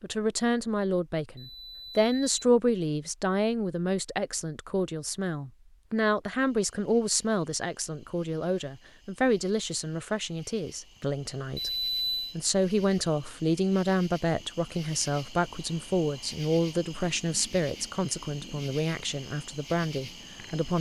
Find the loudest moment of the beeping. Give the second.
12 s.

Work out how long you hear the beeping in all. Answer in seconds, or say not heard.
2 s.